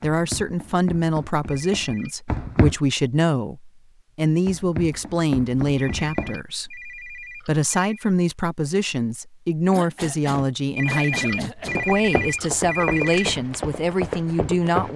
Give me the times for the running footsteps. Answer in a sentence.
The running footsteps can be heard from 0.0 to 2.8 s, from 4.5 to 6.4 s and from 11.6 to 14.9 s.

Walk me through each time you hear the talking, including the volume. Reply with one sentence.
You can hear the talking from 0.0 to 14.9 s, at a steady volume.